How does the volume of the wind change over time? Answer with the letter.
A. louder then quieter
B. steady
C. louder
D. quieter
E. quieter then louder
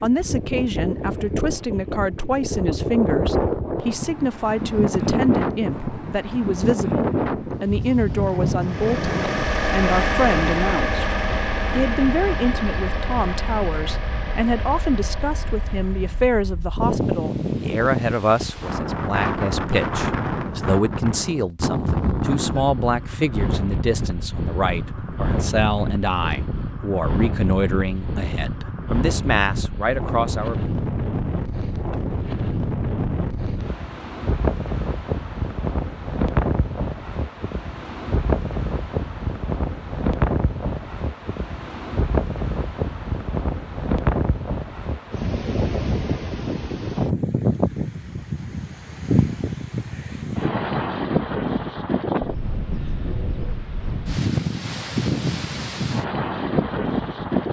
B.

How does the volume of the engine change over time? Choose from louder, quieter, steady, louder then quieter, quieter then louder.
quieter.